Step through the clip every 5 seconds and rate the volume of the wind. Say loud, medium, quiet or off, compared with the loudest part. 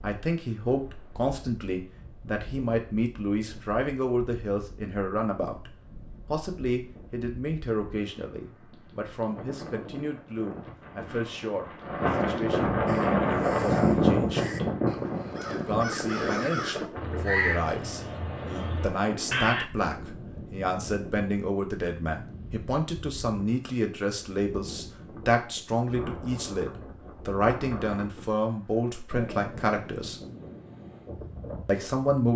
quiet, quiet, loud, medium, quiet, quiet, quiet.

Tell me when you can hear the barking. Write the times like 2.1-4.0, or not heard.
not heard.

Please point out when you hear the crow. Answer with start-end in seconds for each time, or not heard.
12.8-19.6.